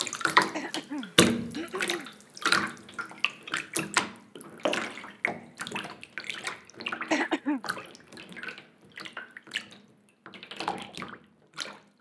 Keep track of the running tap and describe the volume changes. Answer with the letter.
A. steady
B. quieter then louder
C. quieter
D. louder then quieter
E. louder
C.